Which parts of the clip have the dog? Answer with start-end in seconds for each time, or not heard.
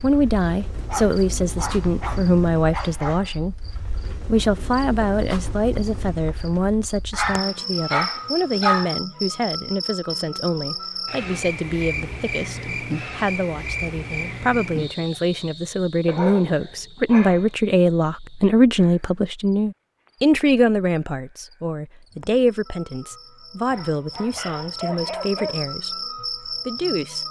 0.8-3.3, 7.1-8.9, 16.1-17.4, 23.6-25.6.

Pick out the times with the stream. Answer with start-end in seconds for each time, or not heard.
not heard.